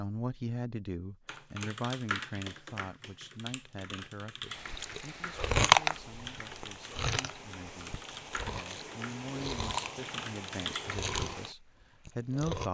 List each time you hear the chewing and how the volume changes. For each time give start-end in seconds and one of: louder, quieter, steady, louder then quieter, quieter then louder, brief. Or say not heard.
4.7-12.6 quieter then louder.